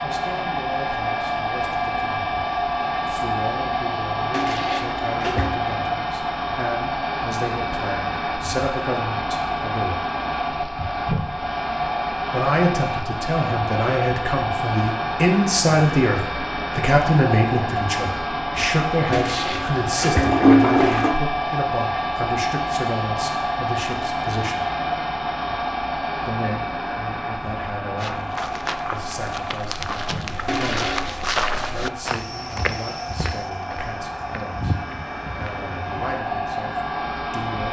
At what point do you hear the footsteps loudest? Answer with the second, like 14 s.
31 s.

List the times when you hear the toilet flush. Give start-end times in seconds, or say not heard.
4.3-5.6, 19.1-21.1, 30.4-31.1.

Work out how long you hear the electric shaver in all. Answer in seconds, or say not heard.
not heard.